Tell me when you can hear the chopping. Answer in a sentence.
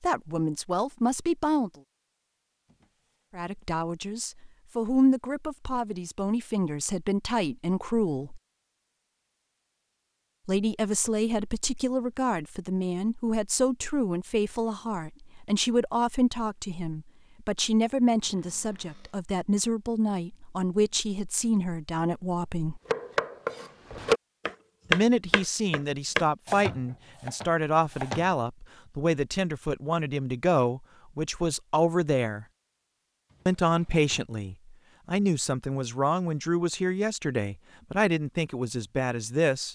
You can hear the chopping from 22.9 to 28.3 s.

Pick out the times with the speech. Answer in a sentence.
You can hear the speech from 0.0 to 1.7 s, from 3.4 to 8.4 s, from 10.4 to 22.8 s, from 24.9 to 32.5 s and from 33.5 to 39.6 s.